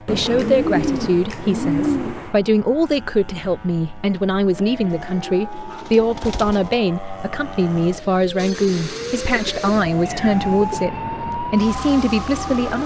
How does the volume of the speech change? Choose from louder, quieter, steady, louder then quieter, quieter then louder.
steady.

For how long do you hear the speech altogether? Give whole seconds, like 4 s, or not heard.
13 s.